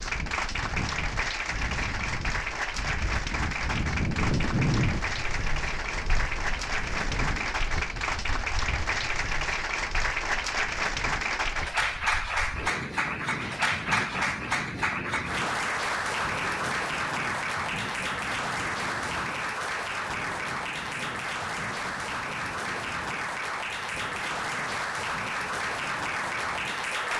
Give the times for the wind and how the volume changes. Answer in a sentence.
The wind can be heard from 0.0 to 27.1 s, getting quieter.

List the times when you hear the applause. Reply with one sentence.
You can hear the applause from 0.0 to 27.1 s.